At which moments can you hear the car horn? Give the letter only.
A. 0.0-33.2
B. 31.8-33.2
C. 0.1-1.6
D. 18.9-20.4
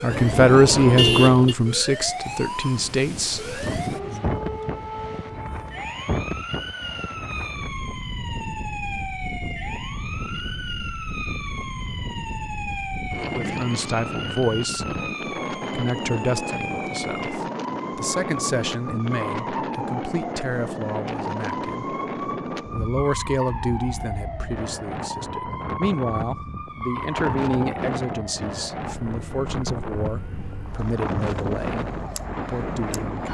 C.